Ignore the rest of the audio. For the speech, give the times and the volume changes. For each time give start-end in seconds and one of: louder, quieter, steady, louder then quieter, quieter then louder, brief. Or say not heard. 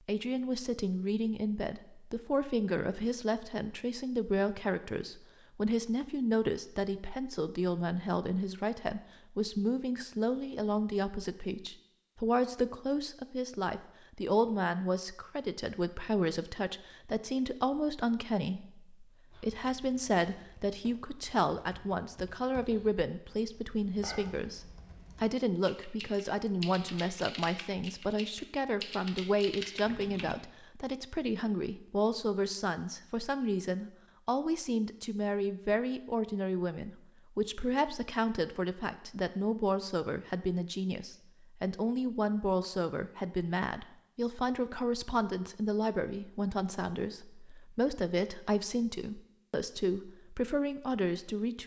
0.1-24.6 steady
25.2-51.6 steady.